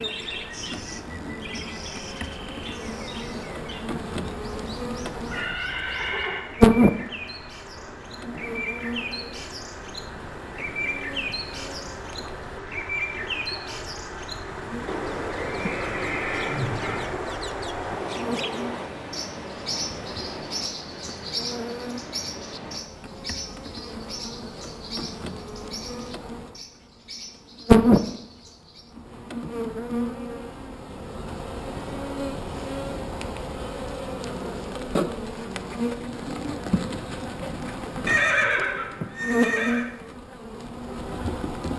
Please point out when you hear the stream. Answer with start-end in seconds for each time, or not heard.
0.0-22.8.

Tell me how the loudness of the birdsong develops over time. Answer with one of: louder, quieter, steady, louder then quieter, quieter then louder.
louder then quieter.